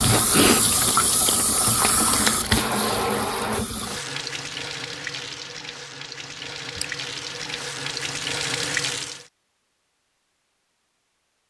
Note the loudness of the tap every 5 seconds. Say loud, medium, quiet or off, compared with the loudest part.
loud, medium, off.